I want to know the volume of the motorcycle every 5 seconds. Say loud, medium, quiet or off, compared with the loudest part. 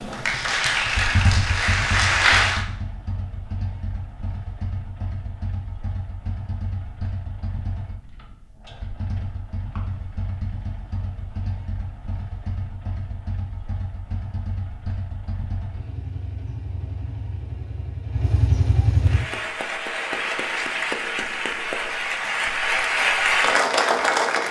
medium, medium, medium, loud, off.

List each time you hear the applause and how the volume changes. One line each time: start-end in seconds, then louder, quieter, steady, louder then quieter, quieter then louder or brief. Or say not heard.
0.0-2.6 brief
19.0-24.4 louder.